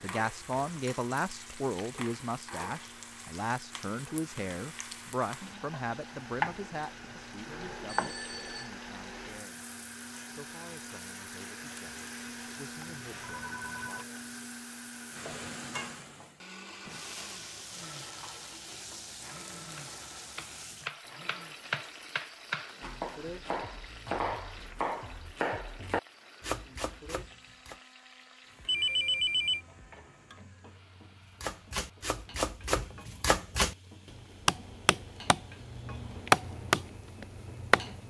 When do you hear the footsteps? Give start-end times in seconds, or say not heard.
not heard.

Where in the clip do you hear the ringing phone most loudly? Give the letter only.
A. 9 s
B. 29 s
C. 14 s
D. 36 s
B.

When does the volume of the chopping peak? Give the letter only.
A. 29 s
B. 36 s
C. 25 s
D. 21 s
B.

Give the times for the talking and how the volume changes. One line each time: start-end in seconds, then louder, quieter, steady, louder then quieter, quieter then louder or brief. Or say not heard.
0.0-14.1 quieter.